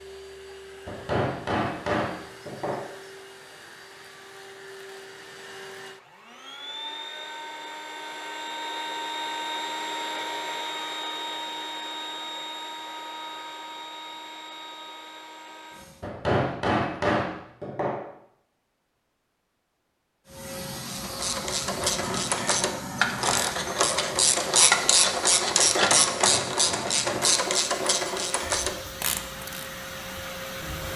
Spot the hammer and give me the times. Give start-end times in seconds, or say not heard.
0.8-2.9, 16.0-18.0, 26.1-27.9.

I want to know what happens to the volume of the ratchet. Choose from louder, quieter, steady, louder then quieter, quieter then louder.
louder then quieter.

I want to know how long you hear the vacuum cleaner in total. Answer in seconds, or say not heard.
27 s.